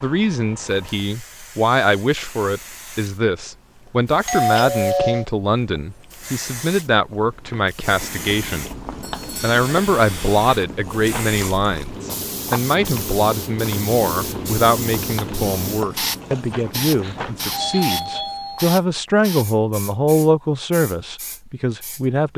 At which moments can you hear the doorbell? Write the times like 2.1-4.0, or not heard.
4.2-5.2, 9.0-9.6, 17.0-18.8.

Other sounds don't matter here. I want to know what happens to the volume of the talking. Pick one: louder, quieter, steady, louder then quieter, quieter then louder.
steady.